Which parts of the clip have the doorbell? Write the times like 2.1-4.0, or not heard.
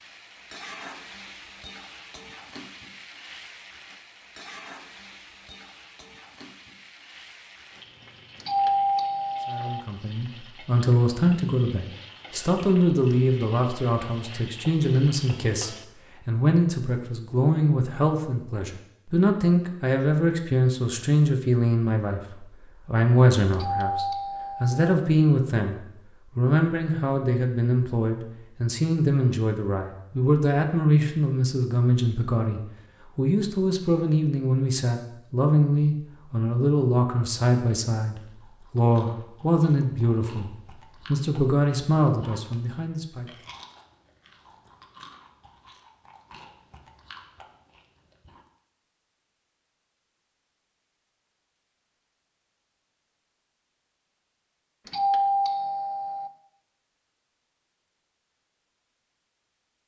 8.4-9.8, 23.5-24.9, 54.9-56.3.